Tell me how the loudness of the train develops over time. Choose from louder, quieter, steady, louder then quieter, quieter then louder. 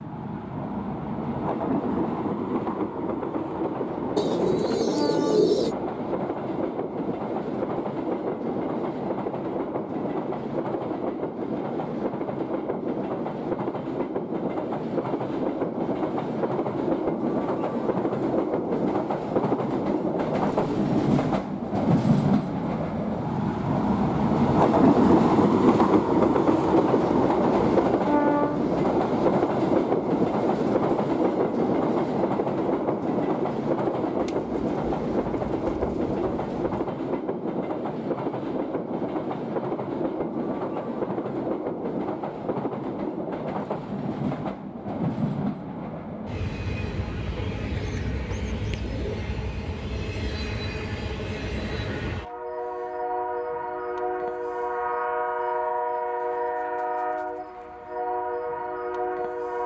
louder then quieter.